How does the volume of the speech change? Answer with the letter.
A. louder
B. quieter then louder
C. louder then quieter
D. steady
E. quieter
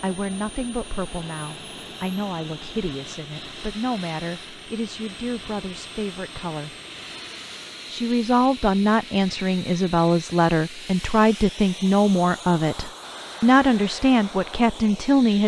A.